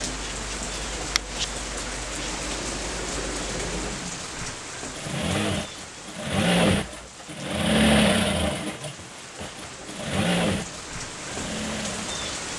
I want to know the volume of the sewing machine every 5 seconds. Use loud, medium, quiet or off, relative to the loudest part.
quiet, loud, medium.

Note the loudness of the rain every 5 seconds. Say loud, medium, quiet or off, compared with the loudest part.
loud, medium, loud.